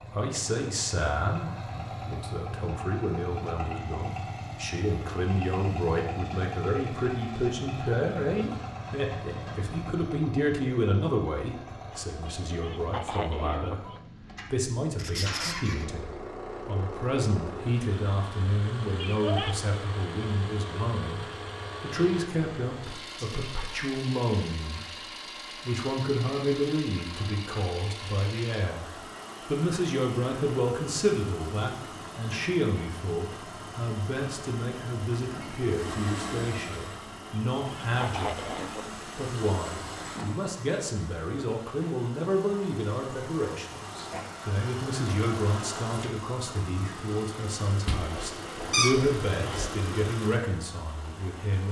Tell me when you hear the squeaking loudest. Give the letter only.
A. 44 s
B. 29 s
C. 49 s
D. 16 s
C.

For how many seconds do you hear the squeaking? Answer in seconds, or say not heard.
3 s.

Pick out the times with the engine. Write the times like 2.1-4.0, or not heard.
0.0-51.6.